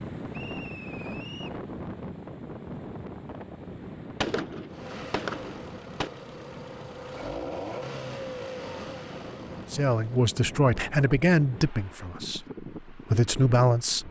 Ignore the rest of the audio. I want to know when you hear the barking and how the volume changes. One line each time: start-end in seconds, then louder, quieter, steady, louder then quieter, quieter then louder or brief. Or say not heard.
not heard.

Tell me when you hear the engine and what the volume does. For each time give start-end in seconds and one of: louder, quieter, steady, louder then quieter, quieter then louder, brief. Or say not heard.
4.7-10.4 louder then quieter.